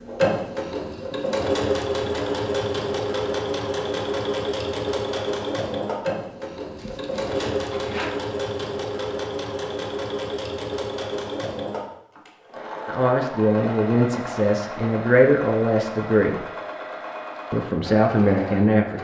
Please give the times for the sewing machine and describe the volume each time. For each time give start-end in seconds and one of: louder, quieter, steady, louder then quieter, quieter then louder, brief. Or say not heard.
0.0-18.9 quieter.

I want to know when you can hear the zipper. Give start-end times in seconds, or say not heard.
6.8-8.1.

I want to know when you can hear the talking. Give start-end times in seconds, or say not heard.
12.8-16.4, 17.5-18.9.